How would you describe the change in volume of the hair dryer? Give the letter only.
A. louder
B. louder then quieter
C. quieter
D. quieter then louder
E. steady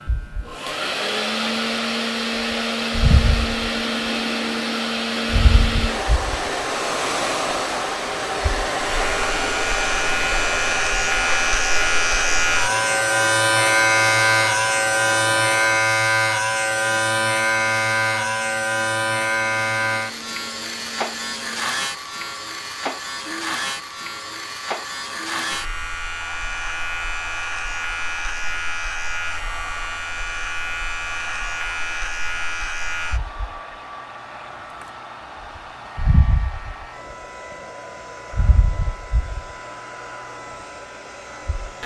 C.